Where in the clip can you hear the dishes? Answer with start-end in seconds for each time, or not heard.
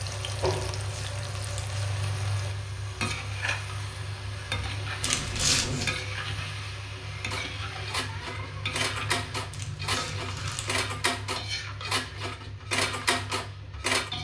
7.3-14.1.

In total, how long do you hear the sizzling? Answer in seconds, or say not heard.
14 s.